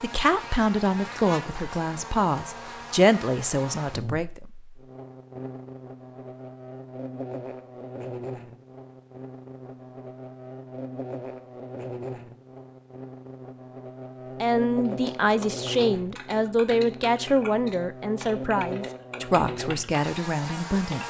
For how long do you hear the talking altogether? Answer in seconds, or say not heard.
11 s.